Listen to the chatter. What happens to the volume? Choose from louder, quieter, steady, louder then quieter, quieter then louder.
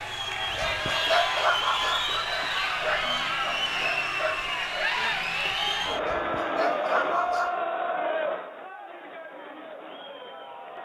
quieter.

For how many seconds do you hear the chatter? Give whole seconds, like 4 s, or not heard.
11 s.